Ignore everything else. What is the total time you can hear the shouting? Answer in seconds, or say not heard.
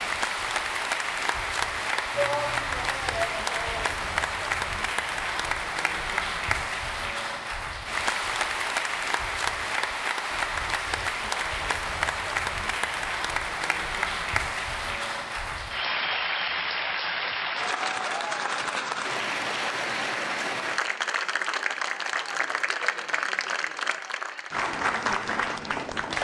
2 s.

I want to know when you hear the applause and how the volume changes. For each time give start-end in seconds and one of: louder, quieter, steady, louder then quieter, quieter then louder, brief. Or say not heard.
0.0-26.1 steady.